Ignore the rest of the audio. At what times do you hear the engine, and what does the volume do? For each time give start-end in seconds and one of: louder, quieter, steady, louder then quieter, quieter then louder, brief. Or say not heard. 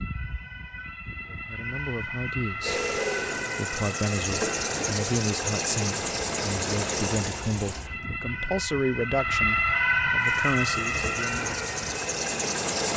2.6-7.9 steady
10.2-12.9 brief.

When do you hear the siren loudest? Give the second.
10 s.